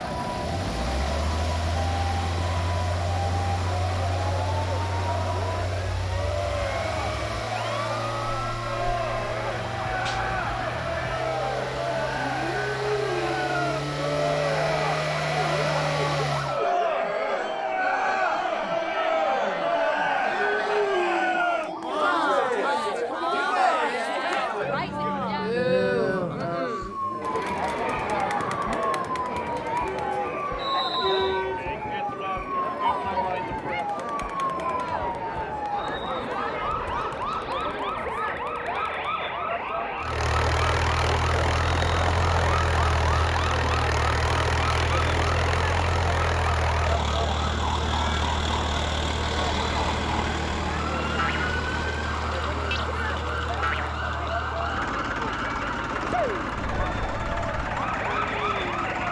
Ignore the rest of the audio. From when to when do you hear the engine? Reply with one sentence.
You can hear the engine from 0.0 to 16.6 s and from 40.0 to 59.0 s.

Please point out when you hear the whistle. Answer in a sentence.
The whistle can be heard from 30.6 to 31.4 s.